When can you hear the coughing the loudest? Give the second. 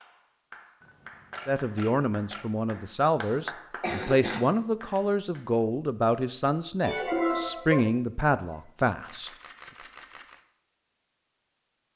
7 s.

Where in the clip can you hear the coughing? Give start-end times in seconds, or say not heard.
3.8-4.5, 6.8-7.8.